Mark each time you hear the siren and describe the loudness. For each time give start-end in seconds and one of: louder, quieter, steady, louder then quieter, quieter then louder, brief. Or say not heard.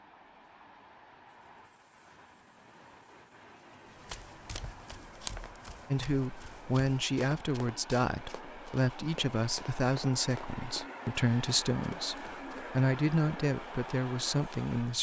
not heard.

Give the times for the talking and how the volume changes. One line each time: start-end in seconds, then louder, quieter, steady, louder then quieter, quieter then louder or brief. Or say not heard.
5.9-14.9 steady.